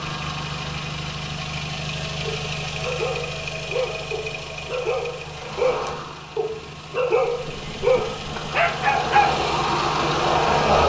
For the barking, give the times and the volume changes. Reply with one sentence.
The barking can be heard from 2.2 to 9.4 s, getting louder.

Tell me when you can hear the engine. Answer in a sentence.
The engine can be heard from 0.0 to 10.8 s.